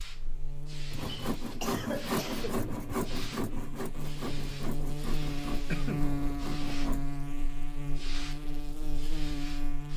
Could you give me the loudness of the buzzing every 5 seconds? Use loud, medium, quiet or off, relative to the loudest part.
medium, loud.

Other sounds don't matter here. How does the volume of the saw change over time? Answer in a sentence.
The volume of the saw goes down.